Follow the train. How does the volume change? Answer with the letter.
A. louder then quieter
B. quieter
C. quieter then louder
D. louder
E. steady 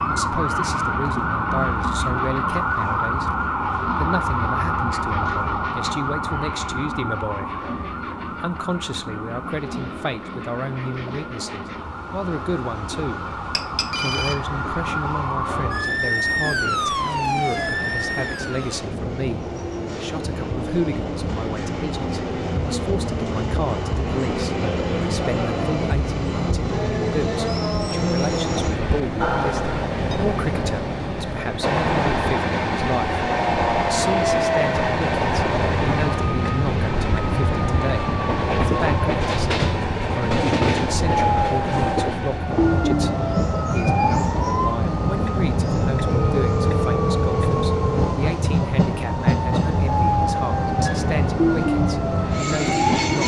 D.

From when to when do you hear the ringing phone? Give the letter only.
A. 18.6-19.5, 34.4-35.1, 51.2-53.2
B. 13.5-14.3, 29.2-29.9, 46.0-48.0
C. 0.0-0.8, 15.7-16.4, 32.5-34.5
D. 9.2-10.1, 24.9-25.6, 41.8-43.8
B.